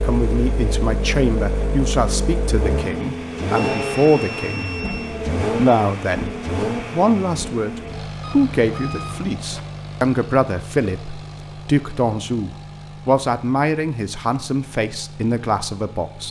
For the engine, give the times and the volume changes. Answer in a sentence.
You can hear the engine from 0.0 to 16.2 s, getting quieter.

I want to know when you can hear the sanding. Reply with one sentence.
You can't hear the sanding here.